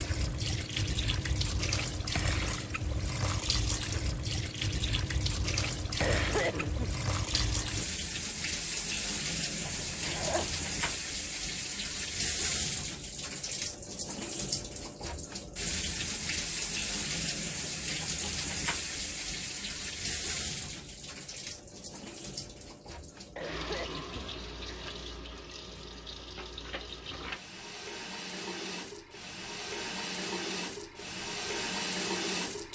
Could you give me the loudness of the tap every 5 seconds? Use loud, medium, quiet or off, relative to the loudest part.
loud, loud, loud, loud, medium, medium, loud.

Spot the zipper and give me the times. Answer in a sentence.
You can hear the zipper from 9.6 to 11.0 s.